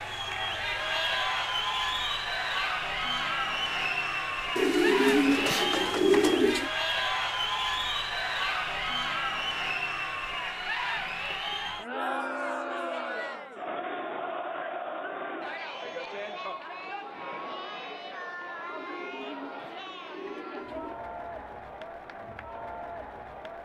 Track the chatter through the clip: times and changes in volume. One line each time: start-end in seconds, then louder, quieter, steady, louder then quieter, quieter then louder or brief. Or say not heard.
0.0-23.5 quieter.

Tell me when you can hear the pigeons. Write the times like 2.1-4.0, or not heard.
4.5-6.7, 18.6-21.0.